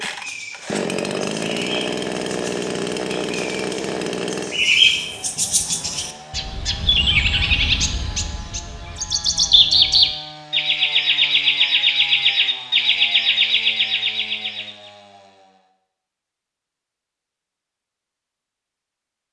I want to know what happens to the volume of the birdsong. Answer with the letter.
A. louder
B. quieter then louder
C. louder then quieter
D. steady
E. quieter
A.